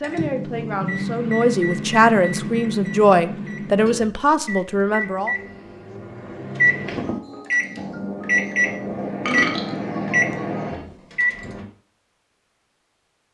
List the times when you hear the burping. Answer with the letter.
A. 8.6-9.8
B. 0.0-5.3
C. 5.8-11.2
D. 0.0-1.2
A.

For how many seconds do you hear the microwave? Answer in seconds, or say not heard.
12 s.